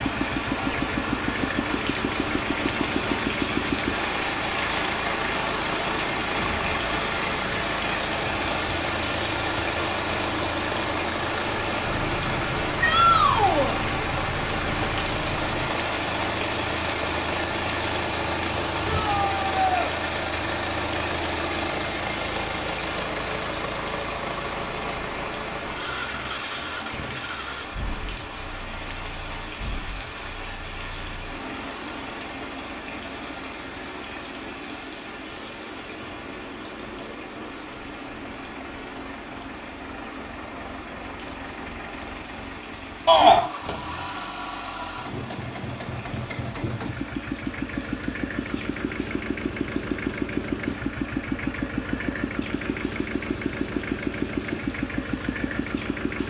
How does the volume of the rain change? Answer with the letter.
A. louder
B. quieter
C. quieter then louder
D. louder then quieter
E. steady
B.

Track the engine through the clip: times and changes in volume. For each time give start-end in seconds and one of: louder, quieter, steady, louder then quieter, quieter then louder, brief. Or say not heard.
0.0-56.2 quieter then louder.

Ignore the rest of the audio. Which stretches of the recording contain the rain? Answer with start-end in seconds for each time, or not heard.
0.0-56.2.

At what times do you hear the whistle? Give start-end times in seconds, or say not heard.
not heard.